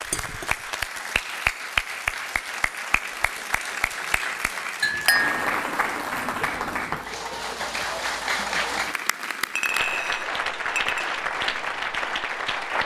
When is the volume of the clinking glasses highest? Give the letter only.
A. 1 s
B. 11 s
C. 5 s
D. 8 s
C.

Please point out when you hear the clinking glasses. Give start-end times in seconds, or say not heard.
0.1-0.7, 4.8-5.4, 9.6-11.1.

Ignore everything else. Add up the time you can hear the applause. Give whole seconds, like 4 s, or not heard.
13 s.